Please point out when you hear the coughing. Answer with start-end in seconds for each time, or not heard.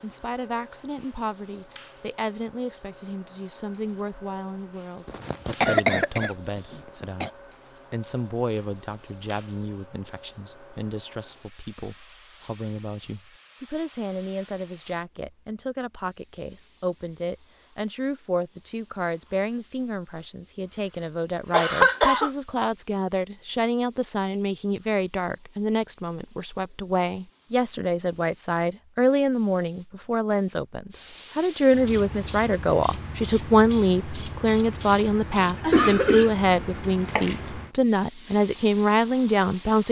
5.0-7.3, 21.5-22.3, 35.6-36.3.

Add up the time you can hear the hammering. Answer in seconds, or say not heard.
not heard.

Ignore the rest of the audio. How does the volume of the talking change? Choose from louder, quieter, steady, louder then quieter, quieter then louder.
louder.